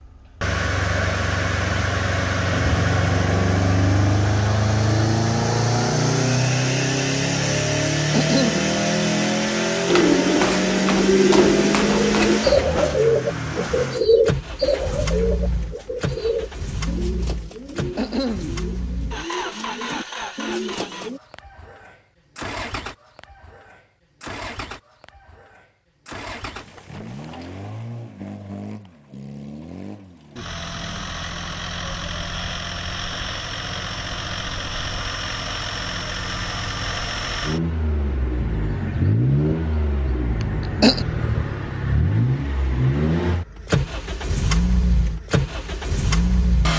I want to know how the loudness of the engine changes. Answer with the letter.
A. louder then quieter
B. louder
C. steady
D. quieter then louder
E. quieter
D.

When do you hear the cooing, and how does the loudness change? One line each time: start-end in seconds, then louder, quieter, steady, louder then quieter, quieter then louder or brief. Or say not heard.
9.8-21.2 quieter.